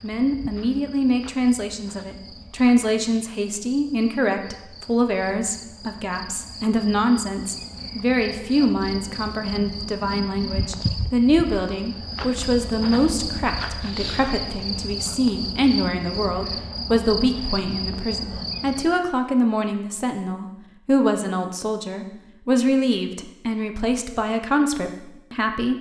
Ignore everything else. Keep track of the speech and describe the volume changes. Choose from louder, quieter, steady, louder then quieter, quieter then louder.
steady.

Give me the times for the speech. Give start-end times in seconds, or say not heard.
0.0-25.7.